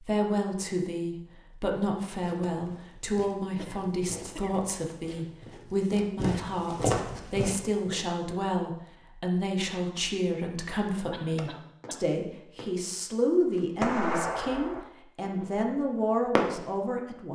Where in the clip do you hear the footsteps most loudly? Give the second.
7 s.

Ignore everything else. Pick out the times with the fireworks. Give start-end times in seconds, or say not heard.
11.3-16.8.